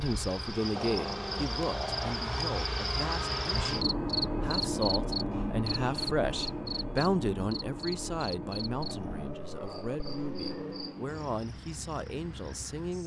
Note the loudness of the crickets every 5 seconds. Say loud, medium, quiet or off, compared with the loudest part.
loud, loud, medium.